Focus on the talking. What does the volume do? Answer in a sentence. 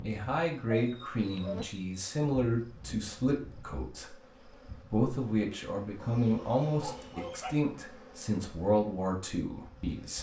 The volume of the talking stays about the same.